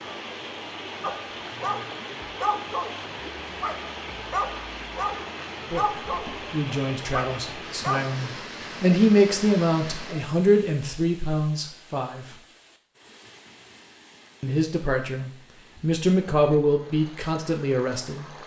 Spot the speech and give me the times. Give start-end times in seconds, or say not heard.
5.7-12.3, 14.4-18.4.